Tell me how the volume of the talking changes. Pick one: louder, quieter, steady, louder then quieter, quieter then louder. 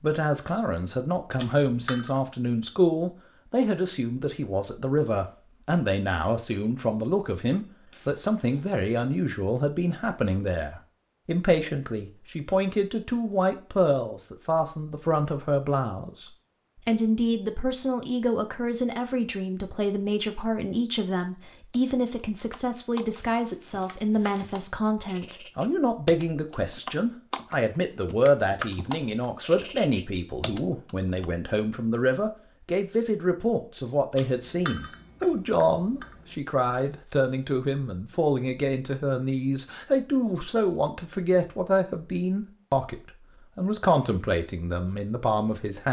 steady.